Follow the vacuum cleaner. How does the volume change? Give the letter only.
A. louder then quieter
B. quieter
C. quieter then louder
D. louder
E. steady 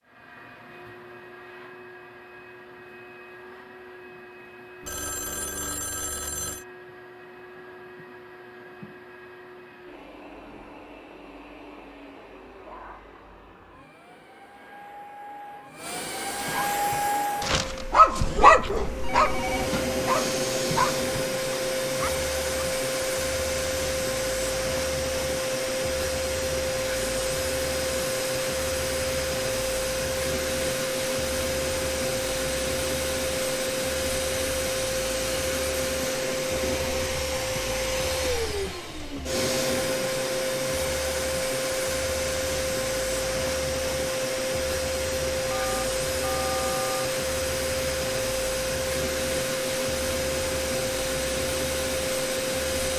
D.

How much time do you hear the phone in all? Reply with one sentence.
You can hear the phone for 5 seconds altogether.